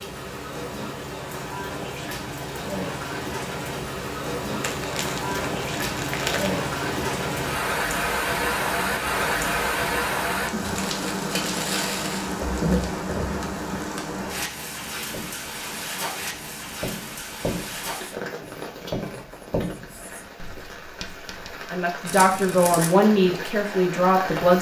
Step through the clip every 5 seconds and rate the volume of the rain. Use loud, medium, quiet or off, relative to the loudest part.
medium, loud, loud, medium, medium.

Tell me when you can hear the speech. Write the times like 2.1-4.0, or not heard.
21.7-24.5.